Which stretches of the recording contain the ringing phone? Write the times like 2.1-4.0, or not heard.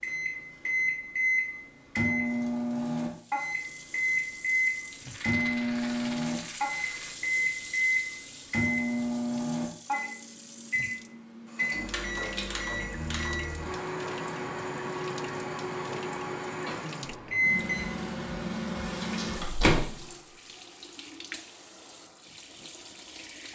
not heard.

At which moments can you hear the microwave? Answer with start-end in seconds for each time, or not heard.
0.0-20.1.